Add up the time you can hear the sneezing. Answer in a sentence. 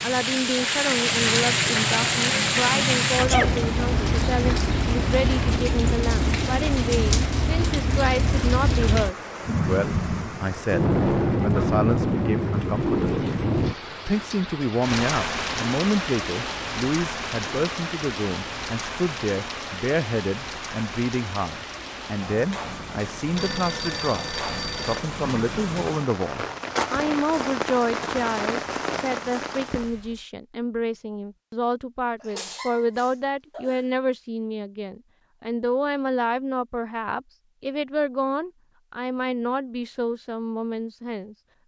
The sneezing can be heard for 2 seconds in total.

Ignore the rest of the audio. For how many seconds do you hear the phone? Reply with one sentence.
You can hear the phone for 2 seconds altogether.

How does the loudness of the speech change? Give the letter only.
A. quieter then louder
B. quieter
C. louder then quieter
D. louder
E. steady
E.